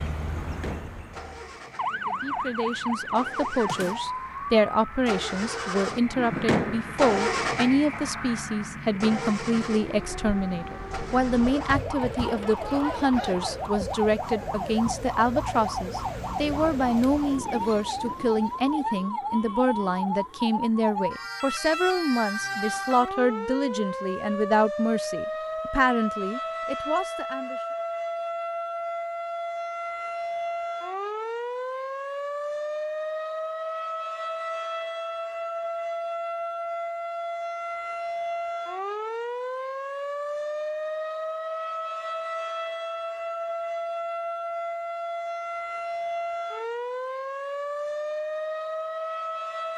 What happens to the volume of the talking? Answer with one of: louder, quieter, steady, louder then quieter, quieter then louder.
steady.